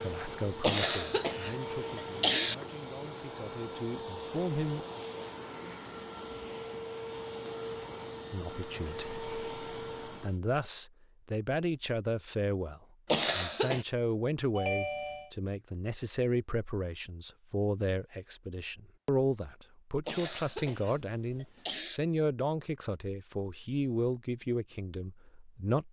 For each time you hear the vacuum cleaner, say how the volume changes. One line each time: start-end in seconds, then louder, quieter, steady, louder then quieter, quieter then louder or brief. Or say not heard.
0.0-10.4 steady.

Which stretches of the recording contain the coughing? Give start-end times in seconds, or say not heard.
0.6-2.5, 13.1-13.8, 20.1-22.0.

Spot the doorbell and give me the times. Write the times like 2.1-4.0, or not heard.
14.6-15.3.